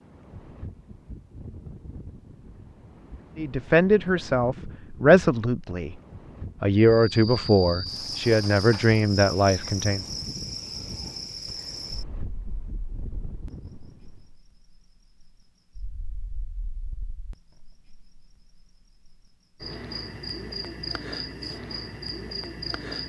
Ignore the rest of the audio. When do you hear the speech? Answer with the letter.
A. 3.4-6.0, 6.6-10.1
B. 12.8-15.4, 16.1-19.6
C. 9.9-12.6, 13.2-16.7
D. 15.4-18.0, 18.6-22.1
A.